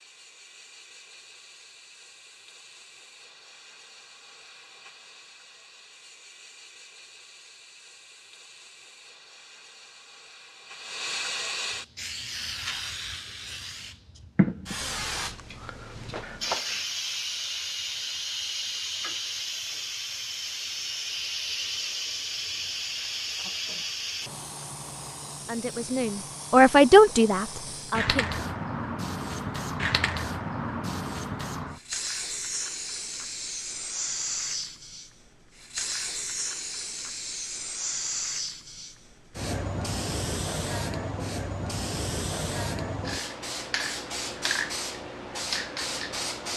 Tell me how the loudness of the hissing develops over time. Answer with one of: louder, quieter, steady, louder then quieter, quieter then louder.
louder.